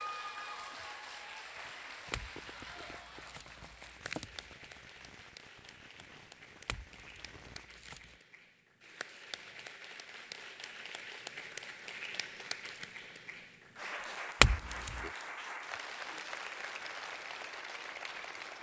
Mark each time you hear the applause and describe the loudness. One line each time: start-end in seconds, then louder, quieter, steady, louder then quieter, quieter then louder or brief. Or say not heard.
0.0-18.5 quieter then louder.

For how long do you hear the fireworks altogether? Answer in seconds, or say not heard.
6 s.